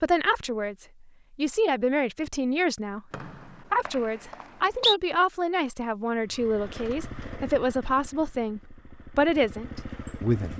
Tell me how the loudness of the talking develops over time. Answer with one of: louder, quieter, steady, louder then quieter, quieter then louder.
steady.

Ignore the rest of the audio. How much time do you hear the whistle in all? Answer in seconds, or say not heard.
2 s.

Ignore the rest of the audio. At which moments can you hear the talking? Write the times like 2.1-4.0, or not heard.
0.0-3.0, 3.7-10.5.